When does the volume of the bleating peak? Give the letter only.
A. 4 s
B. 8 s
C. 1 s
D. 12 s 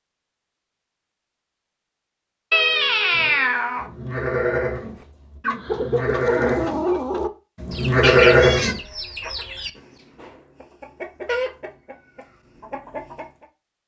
B.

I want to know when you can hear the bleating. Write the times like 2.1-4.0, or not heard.
3.1-8.8.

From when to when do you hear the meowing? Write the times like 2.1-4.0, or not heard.
2.5-3.9, 8.0-8.8.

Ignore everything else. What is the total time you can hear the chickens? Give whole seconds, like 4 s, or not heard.
8 s.